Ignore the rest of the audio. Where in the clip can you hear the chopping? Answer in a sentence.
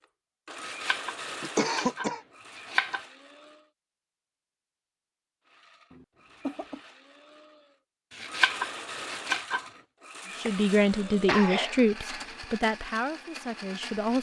The chopping can be heard from 0.6 to 3.0 s and from 8.1 to 9.7 s.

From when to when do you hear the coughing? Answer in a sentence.
The coughing can be heard from 1.4 to 2.2 s, from 5.9 to 6.8 s and from 10.4 to 11.8 s.